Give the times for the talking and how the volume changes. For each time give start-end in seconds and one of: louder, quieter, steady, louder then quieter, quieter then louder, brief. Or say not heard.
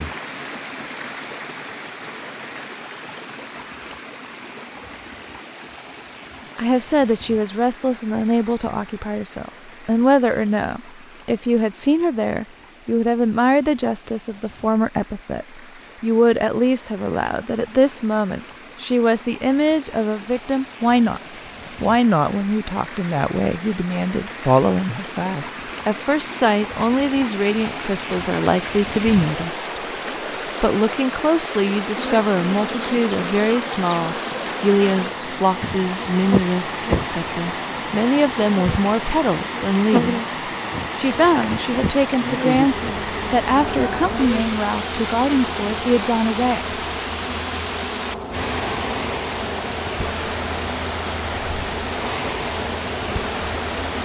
6.5-21.2 steady
21.8-29.9 steady
30.6-46.8 steady.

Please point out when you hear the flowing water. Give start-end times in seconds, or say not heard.
0.0-53.9.